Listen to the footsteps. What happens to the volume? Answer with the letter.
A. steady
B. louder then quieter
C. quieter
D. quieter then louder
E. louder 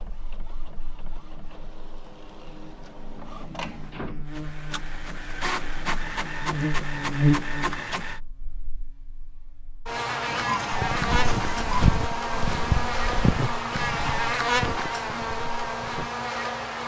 C.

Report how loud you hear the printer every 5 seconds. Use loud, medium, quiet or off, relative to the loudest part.
medium, loud, loud, off.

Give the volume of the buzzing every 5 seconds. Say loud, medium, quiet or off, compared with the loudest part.
quiet, loud, loud, loud.